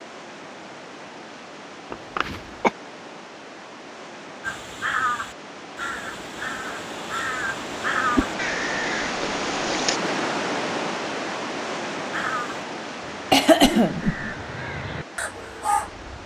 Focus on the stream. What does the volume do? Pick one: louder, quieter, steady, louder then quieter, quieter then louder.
louder then quieter.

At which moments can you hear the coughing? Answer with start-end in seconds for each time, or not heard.
1.9-2.7, 13.3-14.1.